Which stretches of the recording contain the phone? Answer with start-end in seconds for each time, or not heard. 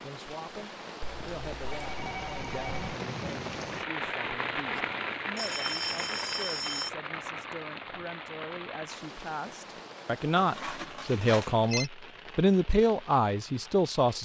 1.0-2.9, 5.3-6.9, 10.3-11.9.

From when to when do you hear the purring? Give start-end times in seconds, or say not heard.
not heard.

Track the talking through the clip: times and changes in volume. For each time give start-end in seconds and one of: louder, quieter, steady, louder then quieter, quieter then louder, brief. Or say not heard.
0.0-14.2 louder.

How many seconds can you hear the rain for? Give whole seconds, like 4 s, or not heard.
14 s.